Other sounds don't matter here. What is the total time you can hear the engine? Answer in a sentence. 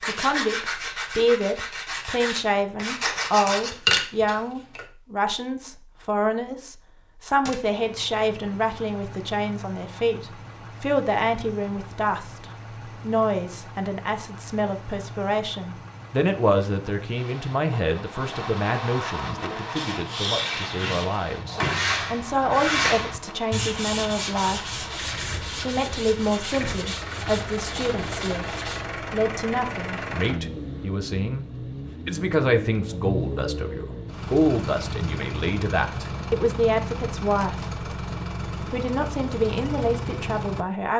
You can hear the engine for 33 seconds altogether.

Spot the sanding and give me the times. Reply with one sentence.
You can hear the sanding from 0.0 to 4.8 s and from 19.2 to 28.9 s.